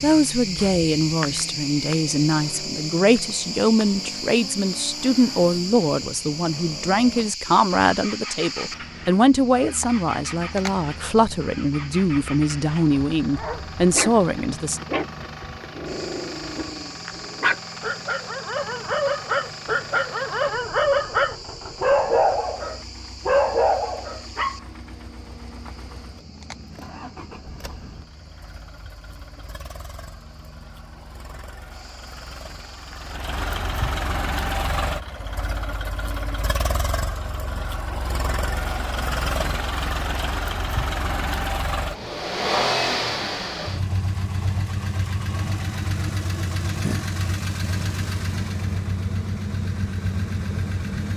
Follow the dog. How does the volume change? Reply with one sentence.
The volume of the dog goes up.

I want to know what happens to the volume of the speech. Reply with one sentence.
The volume of the speech stays about the same.